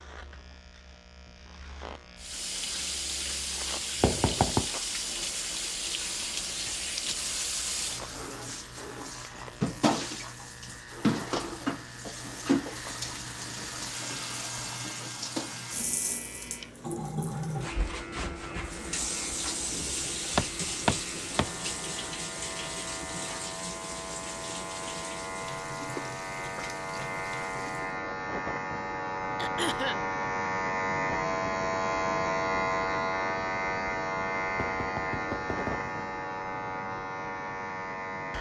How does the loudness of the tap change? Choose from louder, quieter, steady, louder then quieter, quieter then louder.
quieter.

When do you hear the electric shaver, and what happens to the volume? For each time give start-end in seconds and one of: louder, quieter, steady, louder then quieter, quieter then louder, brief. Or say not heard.
0.0-38.3 louder.